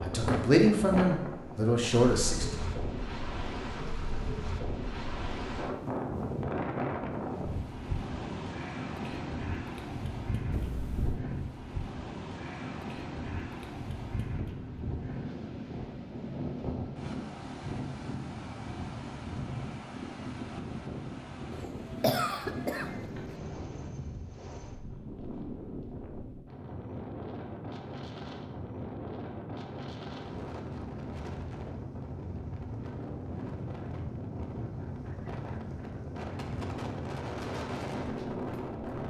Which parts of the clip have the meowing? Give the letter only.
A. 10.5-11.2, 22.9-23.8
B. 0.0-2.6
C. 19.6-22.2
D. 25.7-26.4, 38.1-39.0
A.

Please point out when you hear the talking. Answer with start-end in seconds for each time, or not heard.
0.0-2.6.